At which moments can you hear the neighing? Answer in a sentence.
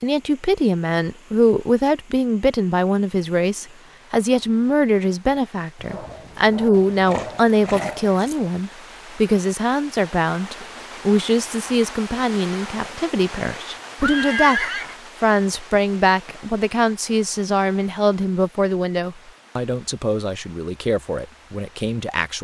You can hear the neighing from 7.0 to 8.2 s and from 12.8 to 14.9 s.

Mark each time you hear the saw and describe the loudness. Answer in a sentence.
The saw can't be heard in this clip.